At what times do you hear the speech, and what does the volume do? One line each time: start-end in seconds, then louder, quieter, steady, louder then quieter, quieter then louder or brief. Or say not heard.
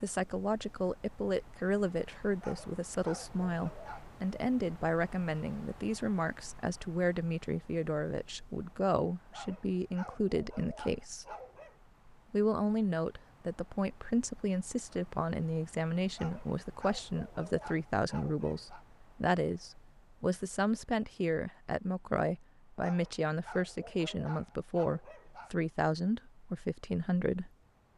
0.0-11.2 steady
12.3-27.5 steady.